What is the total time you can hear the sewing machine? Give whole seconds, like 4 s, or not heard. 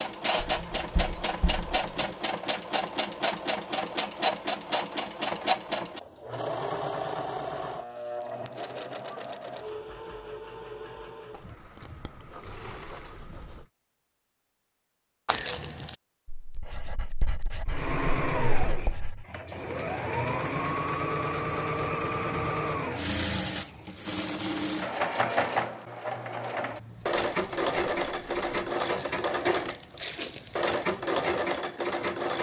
28 s.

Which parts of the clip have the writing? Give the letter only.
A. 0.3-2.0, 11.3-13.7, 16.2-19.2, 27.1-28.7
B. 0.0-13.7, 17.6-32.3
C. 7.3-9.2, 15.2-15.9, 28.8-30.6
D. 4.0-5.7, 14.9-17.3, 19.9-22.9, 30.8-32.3
A.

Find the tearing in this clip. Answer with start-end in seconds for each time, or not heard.
7.3-9.2, 15.2-15.9, 28.8-30.6.